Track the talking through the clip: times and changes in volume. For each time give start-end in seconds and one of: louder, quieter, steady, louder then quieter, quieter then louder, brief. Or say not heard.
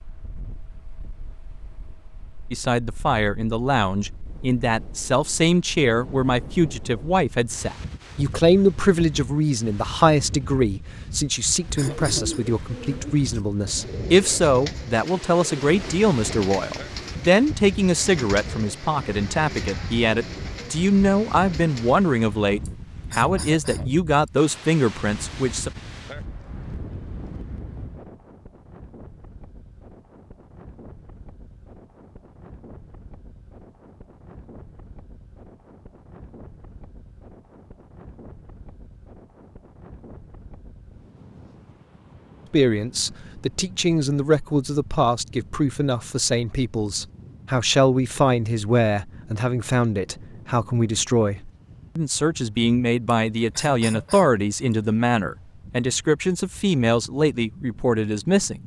2.5-25.7 steady
42.5-58.6 steady.